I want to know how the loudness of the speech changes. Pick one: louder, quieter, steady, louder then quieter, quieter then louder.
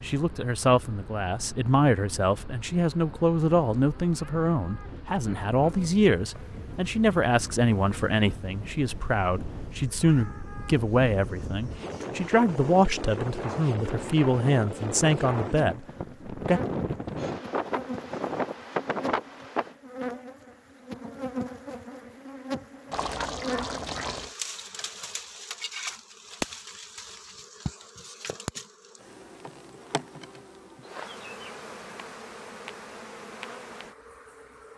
steady.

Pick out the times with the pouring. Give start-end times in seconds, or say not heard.
22.9-24.4.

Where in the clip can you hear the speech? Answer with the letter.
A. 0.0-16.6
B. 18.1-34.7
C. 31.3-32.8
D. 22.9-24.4
A.